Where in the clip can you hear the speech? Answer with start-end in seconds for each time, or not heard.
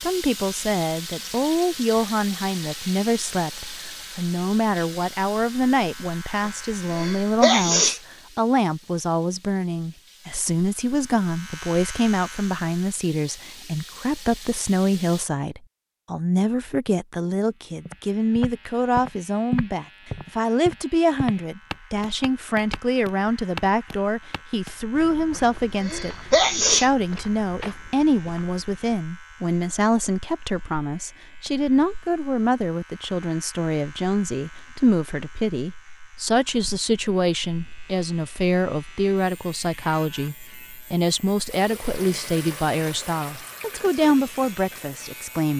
0.0-45.5.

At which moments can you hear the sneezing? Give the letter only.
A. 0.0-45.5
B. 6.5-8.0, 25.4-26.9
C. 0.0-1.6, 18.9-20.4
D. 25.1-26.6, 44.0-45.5
B.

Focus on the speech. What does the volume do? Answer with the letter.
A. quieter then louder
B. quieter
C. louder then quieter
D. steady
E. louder
D.